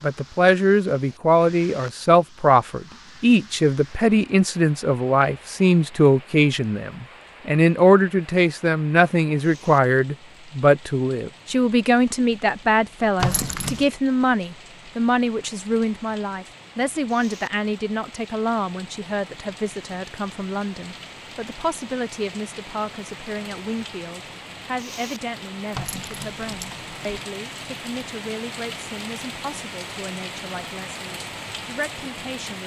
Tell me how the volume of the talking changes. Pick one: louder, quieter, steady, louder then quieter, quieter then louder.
quieter.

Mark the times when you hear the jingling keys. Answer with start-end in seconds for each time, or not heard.
13.2-13.9, 25.7-26.9.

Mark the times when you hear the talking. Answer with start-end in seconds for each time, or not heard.
0.0-32.6.